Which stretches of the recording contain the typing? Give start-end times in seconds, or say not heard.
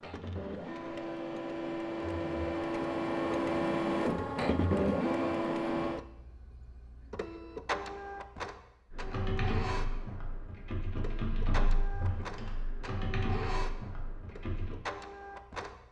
8.9-14.8.